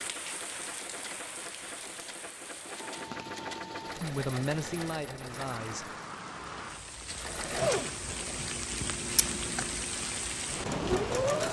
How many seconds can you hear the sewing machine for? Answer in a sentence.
You can hear the sewing machine for 10 seconds altogether.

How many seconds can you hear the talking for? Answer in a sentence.
The talking can be heard for 2 seconds in total.